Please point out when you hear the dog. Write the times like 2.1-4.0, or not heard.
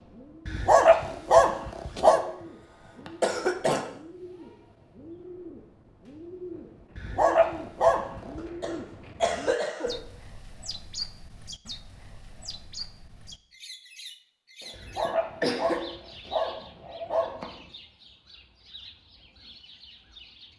0.5-2.2, 7.0-8.4, 14.7-17.6.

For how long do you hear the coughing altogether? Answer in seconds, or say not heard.
5 s.